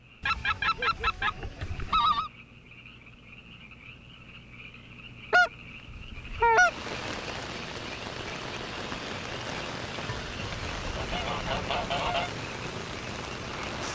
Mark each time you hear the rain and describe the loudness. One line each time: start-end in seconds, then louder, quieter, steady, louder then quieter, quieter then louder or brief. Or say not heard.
6.5-13.8 steady.